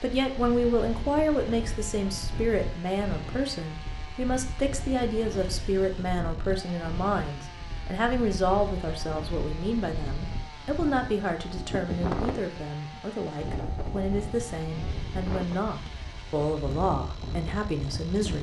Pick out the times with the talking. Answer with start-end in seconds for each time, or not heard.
0.0-18.3.